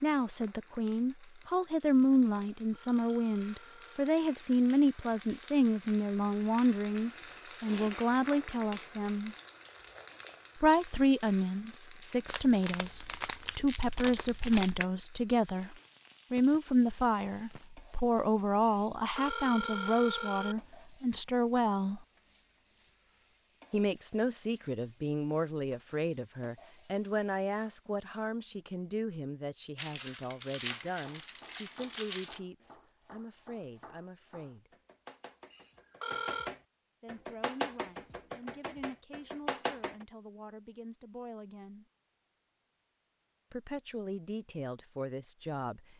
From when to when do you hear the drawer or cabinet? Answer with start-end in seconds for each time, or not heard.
not heard.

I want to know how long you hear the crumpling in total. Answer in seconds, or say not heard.
5 s.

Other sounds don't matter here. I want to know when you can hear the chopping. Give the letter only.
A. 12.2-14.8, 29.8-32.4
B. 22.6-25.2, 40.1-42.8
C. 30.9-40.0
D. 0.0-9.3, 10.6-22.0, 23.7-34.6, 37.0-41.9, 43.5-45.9
C.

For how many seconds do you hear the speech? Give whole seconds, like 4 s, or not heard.
39 s.